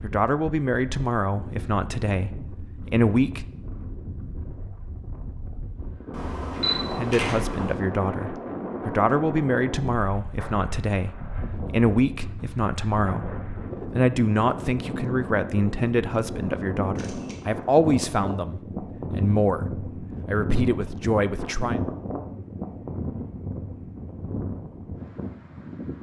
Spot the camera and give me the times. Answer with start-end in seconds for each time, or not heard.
6.1-7.8, 16.9-17.4.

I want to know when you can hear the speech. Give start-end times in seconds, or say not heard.
0.0-3.5, 6.9-21.8.